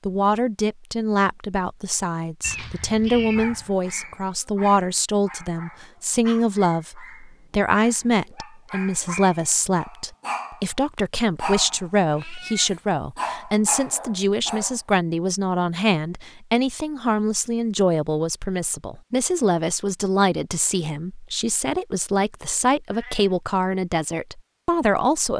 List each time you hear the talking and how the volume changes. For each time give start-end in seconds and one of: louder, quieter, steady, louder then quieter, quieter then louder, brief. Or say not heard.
0.1-25.3 steady.